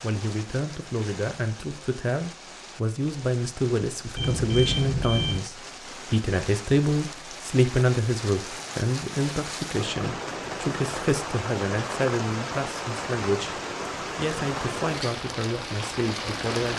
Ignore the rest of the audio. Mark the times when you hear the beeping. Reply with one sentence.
The beeping can be heard from 4.2 to 5.4 s.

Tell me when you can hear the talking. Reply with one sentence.
The talking can be heard from 0.0 to 16.7 s.